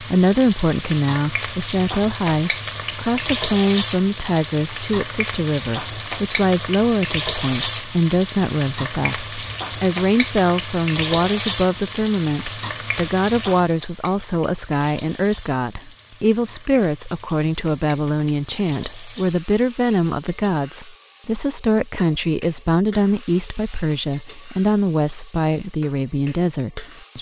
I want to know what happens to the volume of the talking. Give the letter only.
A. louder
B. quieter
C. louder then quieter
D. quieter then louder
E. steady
E.